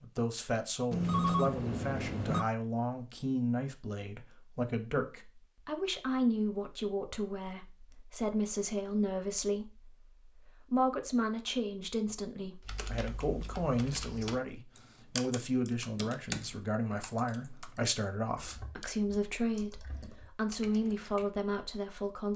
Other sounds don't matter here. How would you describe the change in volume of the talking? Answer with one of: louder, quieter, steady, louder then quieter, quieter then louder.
steady.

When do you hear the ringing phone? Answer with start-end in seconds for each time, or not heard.
0.9-2.5.